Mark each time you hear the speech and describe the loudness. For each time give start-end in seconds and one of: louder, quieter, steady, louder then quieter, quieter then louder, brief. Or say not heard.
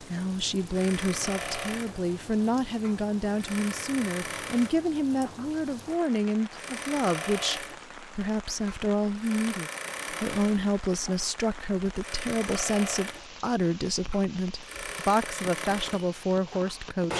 0.0-17.1 steady.